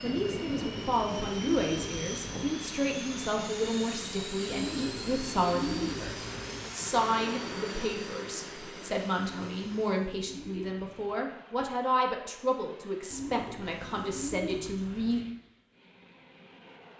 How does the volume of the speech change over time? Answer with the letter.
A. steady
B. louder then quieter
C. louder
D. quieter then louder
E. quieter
A.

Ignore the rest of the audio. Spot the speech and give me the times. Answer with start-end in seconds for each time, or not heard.
0.0-15.2.